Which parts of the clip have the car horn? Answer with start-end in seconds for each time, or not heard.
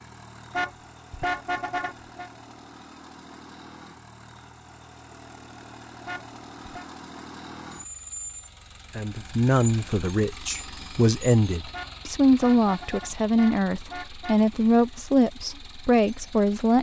0.5-2.3, 6.0-6.8, 11.7-14.3.